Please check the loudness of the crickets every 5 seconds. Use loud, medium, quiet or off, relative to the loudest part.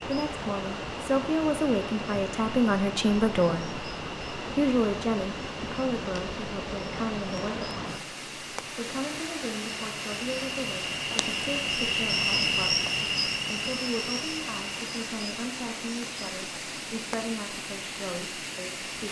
quiet, quiet, loud, quiet.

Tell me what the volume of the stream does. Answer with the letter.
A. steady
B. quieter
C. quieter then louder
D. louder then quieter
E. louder
A.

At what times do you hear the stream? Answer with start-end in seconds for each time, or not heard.
0.0-19.0.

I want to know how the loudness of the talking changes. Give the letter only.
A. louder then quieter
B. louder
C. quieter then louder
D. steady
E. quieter
E.